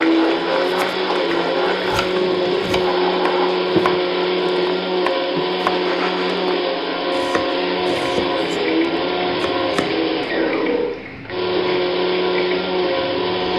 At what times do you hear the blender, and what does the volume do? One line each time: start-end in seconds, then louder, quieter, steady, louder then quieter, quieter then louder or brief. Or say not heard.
0.0-13.5 steady.